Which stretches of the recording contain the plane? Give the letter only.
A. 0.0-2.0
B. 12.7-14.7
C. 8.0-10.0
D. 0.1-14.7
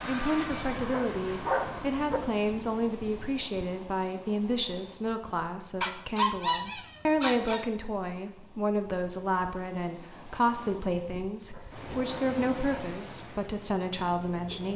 A.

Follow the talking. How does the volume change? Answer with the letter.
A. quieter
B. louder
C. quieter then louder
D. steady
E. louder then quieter
D.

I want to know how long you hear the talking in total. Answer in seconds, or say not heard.
15 s.